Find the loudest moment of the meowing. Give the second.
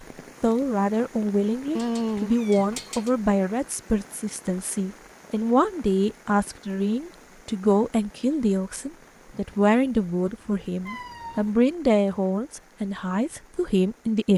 2 s.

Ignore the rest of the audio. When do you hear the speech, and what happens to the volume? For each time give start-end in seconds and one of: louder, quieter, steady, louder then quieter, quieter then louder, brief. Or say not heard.
0.4-14.3 steady.